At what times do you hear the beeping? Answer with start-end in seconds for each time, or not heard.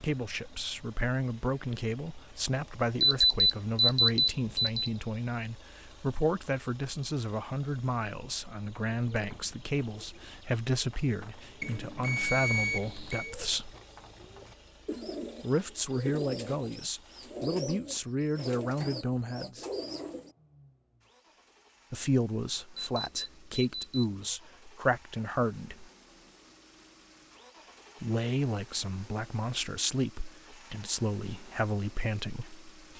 3.0-4.9, 11.6-13.3, 22.8-24.1.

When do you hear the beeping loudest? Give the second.
3 s.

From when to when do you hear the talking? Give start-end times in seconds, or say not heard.
0.0-13.7, 15.4-19.6, 21.9-25.9, 28.0-32.6.